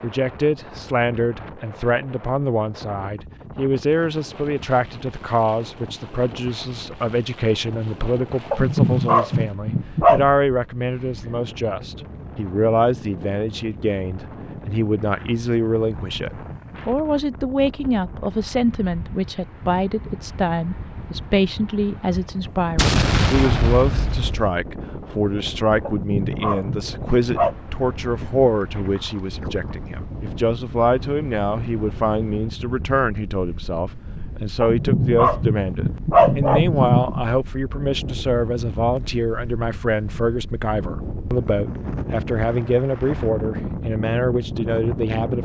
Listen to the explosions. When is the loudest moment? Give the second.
23 s.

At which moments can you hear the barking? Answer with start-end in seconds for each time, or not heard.
8.5-10.2, 25.9-27.6, 34.6-37.4.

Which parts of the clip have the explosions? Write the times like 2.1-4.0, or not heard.
22.8-24.6.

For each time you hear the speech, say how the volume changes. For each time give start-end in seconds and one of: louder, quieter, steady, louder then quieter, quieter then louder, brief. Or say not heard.
0.0-45.3 steady.